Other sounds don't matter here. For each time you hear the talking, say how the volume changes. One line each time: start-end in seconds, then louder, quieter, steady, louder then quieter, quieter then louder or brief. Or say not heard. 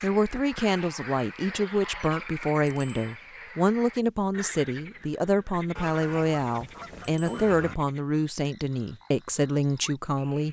0.0-10.4 steady.